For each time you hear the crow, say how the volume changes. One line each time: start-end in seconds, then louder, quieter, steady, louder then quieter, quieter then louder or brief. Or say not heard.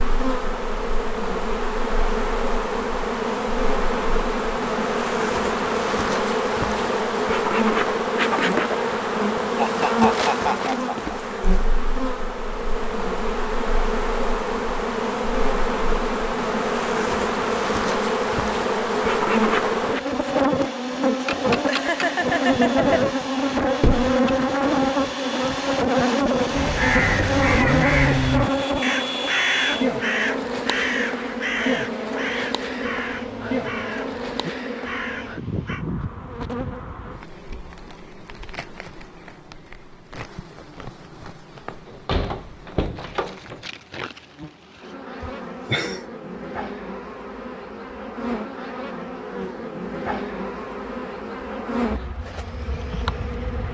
26.5-35.9 quieter.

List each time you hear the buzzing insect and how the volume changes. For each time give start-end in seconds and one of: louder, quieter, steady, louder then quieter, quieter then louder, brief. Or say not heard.
0.0-53.6 quieter.